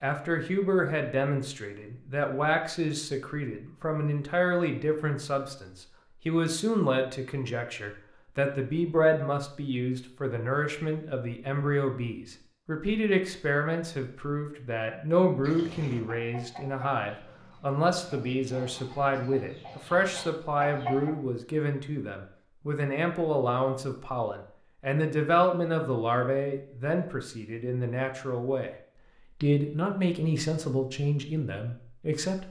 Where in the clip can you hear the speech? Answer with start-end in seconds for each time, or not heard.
0.0-28.7, 29.4-32.4.